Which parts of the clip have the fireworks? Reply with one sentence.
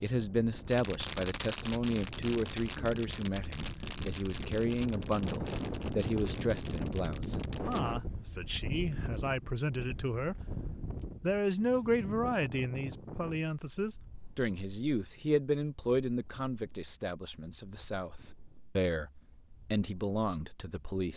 You can hear the fireworks from 0.7 to 7.8 s.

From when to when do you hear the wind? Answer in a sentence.
You can hear the wind from 0.0 to 21.1 s.